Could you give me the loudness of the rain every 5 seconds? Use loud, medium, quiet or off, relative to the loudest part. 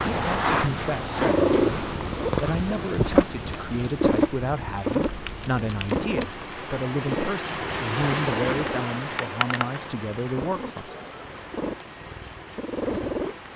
medium, loud, medium.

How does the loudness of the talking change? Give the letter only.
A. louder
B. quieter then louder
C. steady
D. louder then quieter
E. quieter
C.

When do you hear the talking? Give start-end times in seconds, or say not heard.
0.0-10.9.